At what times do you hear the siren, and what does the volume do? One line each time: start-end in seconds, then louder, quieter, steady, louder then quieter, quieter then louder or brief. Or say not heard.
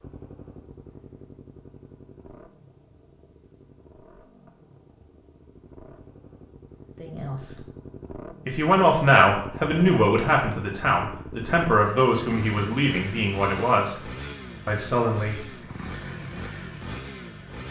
not heard.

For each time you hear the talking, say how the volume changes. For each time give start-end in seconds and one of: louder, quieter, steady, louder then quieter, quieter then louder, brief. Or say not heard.
7.0-7.5 brief
8.4-13.9 quieter
14.7-15.4 brief.